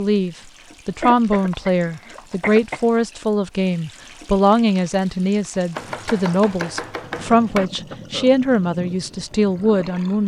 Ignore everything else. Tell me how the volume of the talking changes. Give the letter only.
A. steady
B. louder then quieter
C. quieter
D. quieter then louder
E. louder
A.